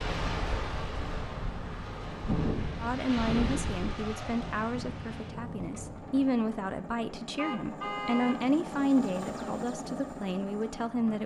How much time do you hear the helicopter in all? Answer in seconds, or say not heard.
11 s.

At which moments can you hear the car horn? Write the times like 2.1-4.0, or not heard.
7.3-8.4.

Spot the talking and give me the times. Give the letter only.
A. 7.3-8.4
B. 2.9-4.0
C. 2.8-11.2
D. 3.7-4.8
C.